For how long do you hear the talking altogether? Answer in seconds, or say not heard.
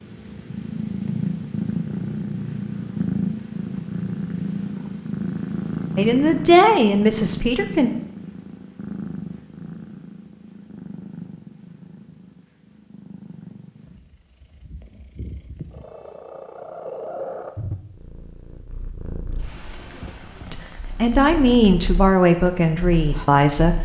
5 s.